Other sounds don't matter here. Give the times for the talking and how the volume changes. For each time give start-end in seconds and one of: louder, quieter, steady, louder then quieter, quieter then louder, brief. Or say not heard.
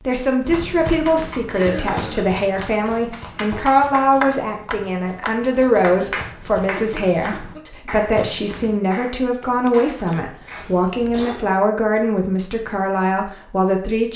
0.1-14.1 steady.